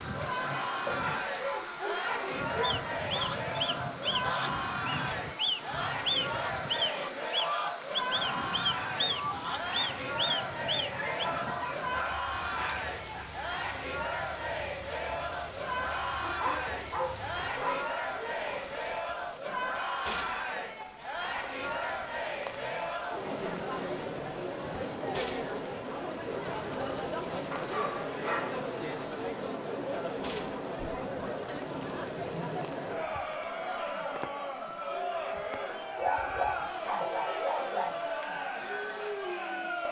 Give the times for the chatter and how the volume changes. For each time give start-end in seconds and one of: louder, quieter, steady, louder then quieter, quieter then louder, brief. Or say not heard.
0.0-39.8 steady.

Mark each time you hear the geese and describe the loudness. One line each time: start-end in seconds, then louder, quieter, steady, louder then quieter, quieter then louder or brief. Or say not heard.
2.6-11.2 steady.